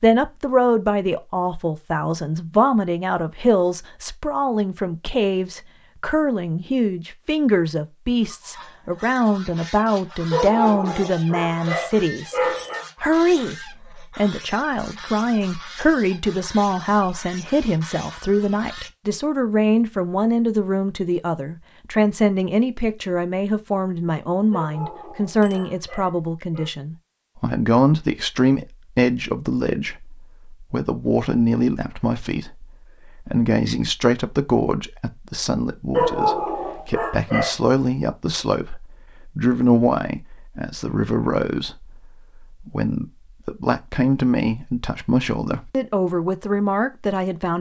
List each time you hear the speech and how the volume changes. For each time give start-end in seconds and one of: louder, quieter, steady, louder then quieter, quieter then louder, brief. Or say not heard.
0.0-12.4 steady
13.0-47.5 steady.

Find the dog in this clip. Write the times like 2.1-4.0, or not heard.
10.3-12.8, 24.5-26.7, 35.9-37.5.